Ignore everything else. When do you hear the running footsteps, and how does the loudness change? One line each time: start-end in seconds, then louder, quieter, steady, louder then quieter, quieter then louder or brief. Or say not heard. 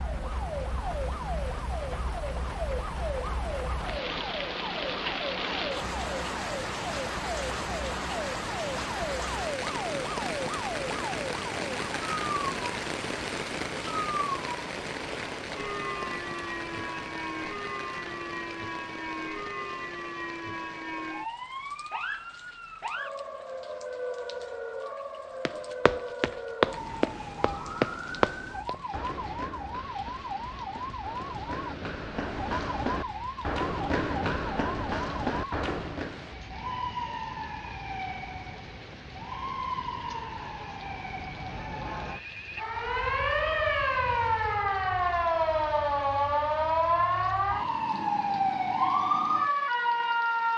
25.4-36.2 quieter then louder.